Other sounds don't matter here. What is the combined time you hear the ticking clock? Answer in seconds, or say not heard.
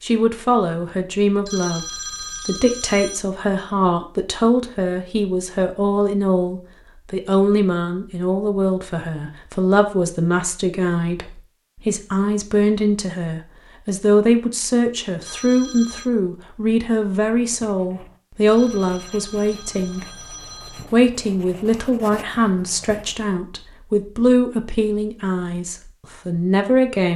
not heard.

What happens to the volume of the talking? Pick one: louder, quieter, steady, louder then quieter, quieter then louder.
steady.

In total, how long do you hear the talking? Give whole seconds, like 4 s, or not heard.
27 s.